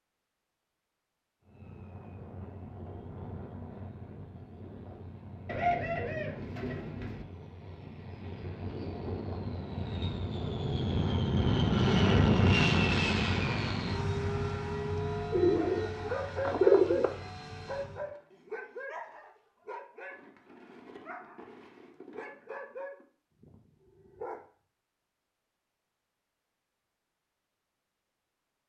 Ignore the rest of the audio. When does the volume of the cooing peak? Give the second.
17 s.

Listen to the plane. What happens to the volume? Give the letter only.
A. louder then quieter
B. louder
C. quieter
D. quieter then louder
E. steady
A.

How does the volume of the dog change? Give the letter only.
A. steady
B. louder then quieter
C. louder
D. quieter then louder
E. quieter
E.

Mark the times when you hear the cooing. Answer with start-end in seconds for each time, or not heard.
5.5-7.2, 15.3-17.1.